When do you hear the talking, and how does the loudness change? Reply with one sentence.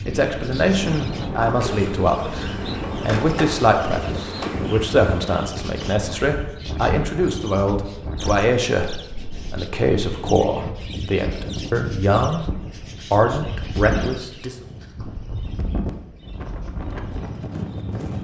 You can hear the talking from 0.1 to 14.7 s, at a steady volume.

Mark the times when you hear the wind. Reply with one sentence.
The wind can be heard from 0.0 to 18.1 s.